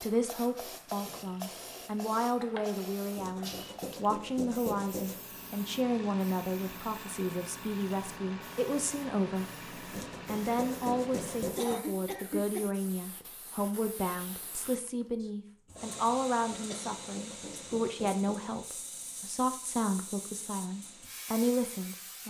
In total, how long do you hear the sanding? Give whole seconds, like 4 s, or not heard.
6 s.